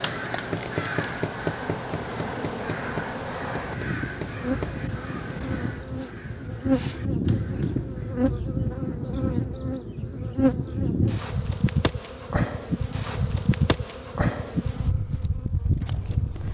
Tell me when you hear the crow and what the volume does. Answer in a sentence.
You can hear the crow from 0.0 to 8.2 s, getting quieter.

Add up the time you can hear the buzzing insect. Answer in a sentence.
The buzzing insect can be heard for 16 seconds in total.